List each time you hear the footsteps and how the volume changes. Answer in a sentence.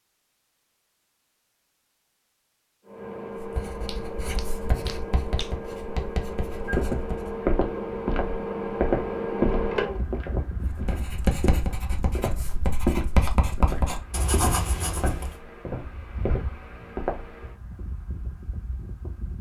The footsteps can be heard from 6.5 to 17.4 s, getting quieter.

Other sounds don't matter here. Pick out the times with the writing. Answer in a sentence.
You can hear the writing from 3.4 to 7.3 s and from 10.7 to 15.3 s.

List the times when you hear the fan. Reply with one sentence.
You can hear the fan from 2.9 to 19.3 s.